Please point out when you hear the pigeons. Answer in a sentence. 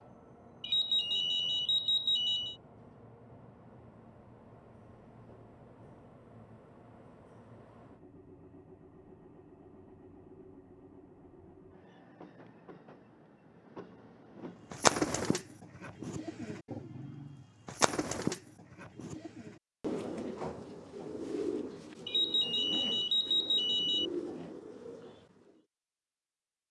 You can hear the pigeons from 14.7 to 25.6 s.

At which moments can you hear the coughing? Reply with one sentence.
You can't hear the coughing here.